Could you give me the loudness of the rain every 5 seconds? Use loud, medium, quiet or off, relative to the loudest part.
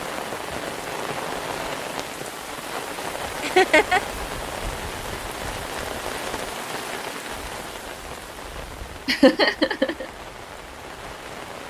loud, loud, medium.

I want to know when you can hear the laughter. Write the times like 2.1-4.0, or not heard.
3.4-4.0, 9.1-10.1.